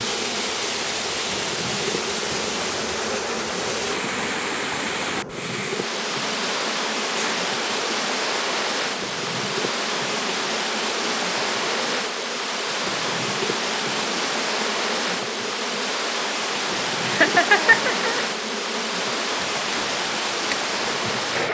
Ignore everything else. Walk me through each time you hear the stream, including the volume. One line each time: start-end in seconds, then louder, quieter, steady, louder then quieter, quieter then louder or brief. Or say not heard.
0.0-21.4 steady.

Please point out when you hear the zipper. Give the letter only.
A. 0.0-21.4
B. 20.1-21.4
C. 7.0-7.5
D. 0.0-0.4
C.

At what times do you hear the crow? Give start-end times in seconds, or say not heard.
not heard.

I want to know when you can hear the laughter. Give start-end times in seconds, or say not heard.
17.0-18.2.